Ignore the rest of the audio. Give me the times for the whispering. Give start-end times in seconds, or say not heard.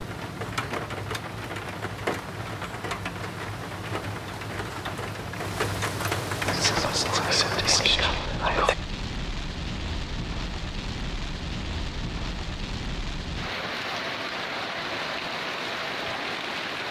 6.5-8.8.